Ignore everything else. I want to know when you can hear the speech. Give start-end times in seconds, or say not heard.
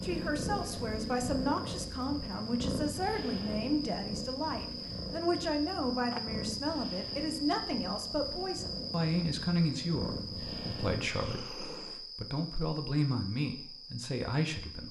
0.0-14.8.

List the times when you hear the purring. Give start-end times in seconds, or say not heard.
0.0-12.0.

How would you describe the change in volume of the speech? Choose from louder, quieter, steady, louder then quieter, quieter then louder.
steady.